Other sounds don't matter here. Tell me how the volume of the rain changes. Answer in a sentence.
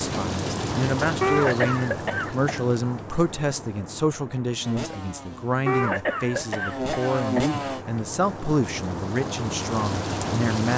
The volume of the rain goes down, then up.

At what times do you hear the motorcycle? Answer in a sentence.
The motorcycle can be heard from 4.6 to 7.8 s.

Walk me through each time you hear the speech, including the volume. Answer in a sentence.
The speech can be heard from 0.0 to 10.7 s, at a steady volume.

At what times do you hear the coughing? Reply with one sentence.
You can hear the coughing from 1.2 to 2.6 s and from 5.7 to 7.7 s.